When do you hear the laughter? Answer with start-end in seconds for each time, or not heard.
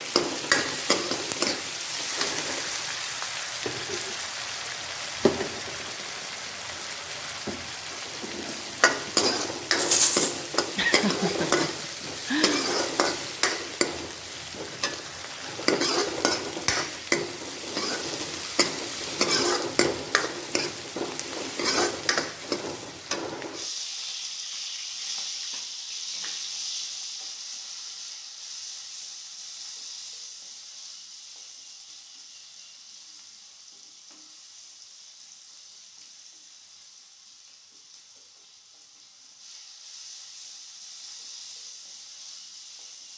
10.8-12.7.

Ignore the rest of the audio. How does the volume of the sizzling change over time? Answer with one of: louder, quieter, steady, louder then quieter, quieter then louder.
quieter.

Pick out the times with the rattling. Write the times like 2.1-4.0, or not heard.
9.8-10.3.